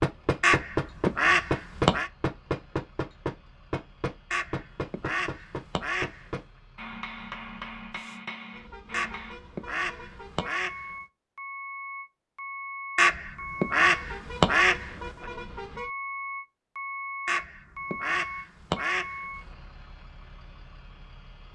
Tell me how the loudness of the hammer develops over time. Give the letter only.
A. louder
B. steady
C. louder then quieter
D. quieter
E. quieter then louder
D.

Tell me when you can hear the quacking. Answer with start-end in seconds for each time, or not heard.
0.4-2.1, 4.3-6.3, 8.9-10.9, 12.9-15.2, 17.2-19.3.